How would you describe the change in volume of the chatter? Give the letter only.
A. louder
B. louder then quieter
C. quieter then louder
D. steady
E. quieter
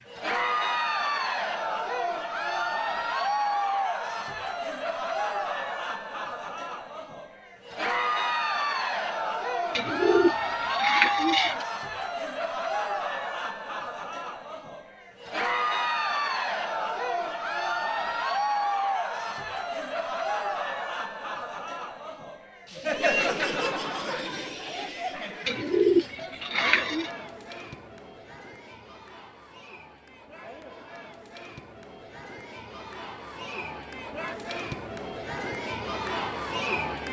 E.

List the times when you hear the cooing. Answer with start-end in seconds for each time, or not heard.
9.8-11.7, 25.4-27.1.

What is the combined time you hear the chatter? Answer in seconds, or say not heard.
37 s.